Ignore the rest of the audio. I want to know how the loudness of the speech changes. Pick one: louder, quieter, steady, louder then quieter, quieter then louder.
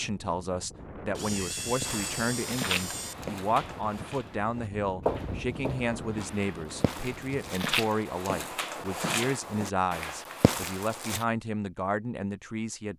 steady.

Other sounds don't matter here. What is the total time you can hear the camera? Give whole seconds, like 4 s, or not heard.
2 s.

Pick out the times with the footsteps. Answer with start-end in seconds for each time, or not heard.
1.8-11.2.